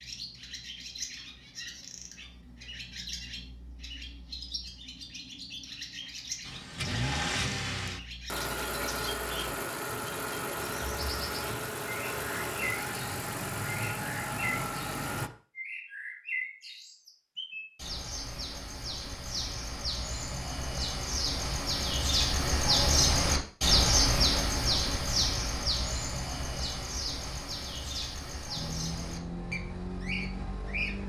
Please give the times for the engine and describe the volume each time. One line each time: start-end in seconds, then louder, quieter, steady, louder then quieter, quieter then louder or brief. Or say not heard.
6.4-15.3 steady
28.6-31.0 brief.